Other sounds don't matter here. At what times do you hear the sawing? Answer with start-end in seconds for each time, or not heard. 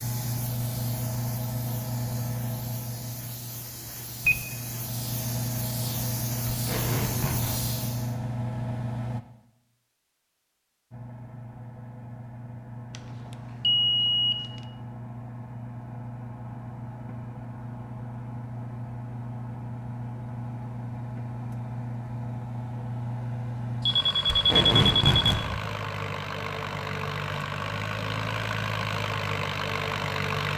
not heard.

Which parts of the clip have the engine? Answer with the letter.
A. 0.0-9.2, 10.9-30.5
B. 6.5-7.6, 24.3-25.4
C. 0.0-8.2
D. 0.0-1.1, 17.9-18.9
A.